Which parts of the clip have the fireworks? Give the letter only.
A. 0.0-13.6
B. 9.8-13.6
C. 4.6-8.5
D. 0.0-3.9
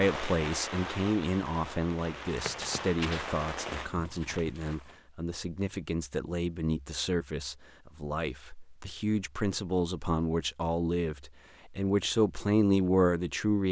D.